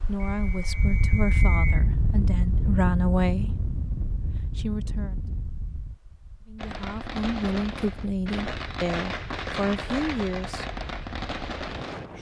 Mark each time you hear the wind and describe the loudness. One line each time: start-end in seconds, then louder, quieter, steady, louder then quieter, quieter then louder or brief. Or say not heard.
0.0-12.1 quieter.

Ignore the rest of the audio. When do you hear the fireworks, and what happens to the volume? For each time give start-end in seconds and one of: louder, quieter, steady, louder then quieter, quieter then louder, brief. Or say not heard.
6.5-12.1 steady.